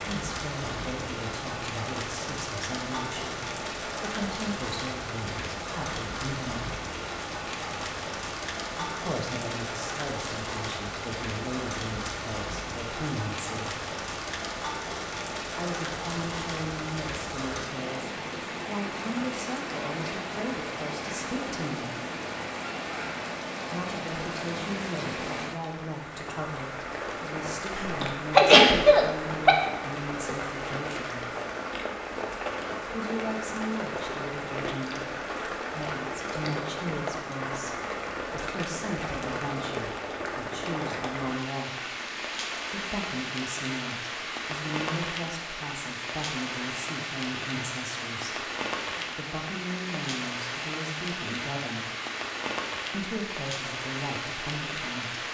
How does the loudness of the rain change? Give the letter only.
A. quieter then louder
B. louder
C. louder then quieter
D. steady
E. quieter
D.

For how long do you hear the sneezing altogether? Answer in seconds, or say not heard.
2 s.